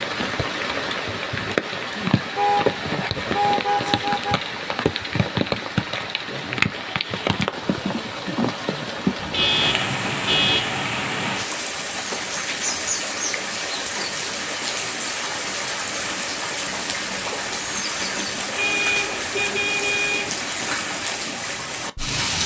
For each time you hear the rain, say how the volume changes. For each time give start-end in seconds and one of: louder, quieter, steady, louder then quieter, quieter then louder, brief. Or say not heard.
0.0-22.4 steady.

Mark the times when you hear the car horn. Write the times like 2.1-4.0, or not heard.
2.4-4.5, 9.2-10.8, 18.6-20.4.